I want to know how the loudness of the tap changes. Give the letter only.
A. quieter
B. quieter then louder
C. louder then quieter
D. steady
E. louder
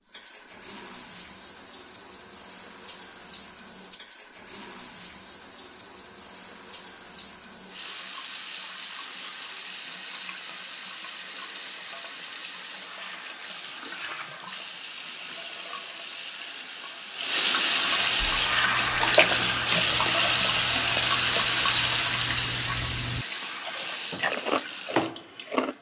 E.